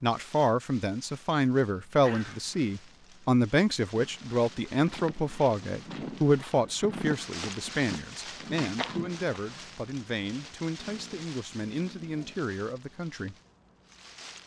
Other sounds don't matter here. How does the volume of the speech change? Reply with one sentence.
The loudness of the speech goes down.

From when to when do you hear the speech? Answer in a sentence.
The speech can be heard from 0.0 to 13.3 s.